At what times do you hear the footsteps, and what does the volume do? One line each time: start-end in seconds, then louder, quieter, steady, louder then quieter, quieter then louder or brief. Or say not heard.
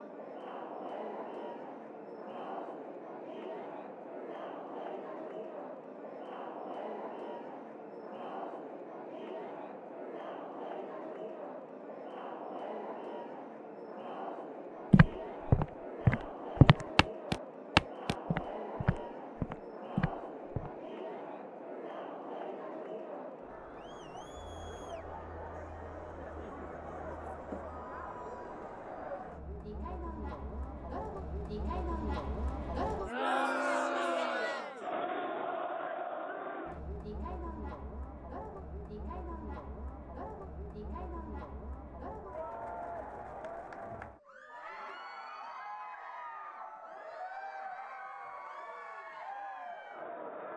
14.9-20.7 quieter.